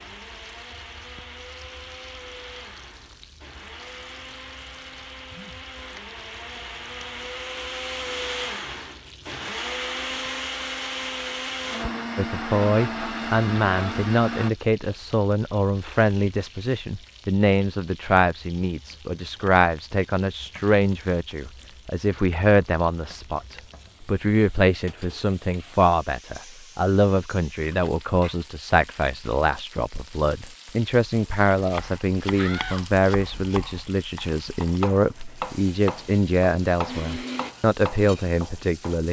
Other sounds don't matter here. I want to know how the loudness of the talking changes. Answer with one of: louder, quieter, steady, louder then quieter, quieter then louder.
steady.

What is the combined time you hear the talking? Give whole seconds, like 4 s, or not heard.
27 s.